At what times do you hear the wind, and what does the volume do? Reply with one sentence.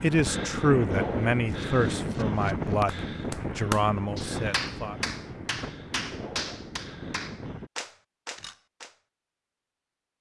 You can hear the wind from 0.0 to 7.7 s, getting quieter.